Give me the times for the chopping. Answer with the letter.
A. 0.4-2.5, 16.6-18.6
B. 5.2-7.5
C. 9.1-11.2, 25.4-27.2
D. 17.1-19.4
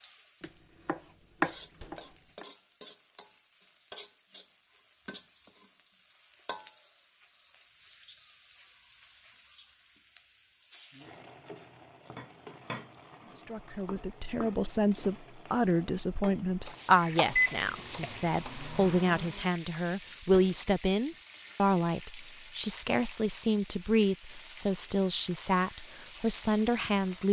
A.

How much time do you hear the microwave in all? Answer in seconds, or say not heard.
2 s.